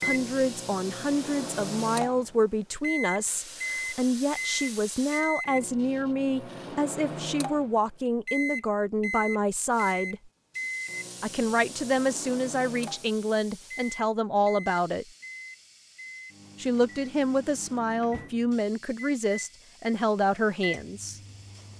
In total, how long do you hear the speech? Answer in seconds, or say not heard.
19 s.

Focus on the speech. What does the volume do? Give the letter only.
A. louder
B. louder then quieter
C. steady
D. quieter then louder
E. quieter
C.